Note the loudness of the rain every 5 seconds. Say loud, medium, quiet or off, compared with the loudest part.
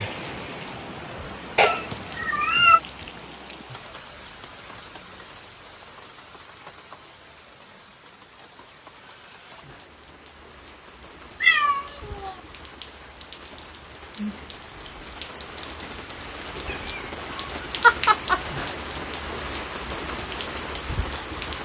medium, quiet, medium, loud, loud.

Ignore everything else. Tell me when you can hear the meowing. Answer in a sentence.
You can hear the meowing from 1.6 to 2.8 s, from 11.4 to 12.3 s and from 16.6 to 18.4 s.